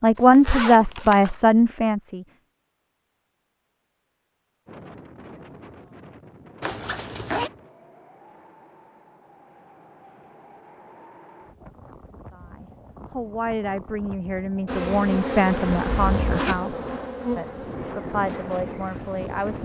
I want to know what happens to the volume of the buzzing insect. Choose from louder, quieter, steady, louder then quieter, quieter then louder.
quieter.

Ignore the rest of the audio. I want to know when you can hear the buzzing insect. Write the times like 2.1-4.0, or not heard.
14.7-19.6.